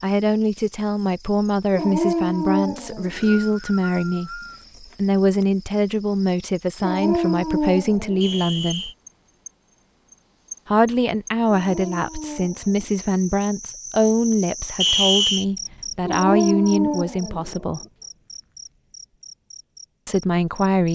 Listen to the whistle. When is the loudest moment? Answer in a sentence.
The loudest moment of the whistle is at 15 seconds.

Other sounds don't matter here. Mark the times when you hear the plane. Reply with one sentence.
The plane can't be heard in this clip.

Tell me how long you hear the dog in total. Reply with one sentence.
You can hear the dog for 7 seconds altogether.